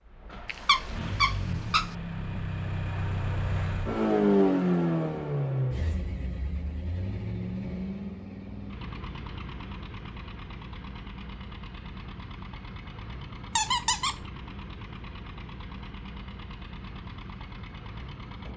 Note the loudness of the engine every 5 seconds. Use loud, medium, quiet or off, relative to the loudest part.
loud, medium, quiet, quiet.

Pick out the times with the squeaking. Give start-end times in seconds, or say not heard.
0.5-1.9, 13.6-14.2.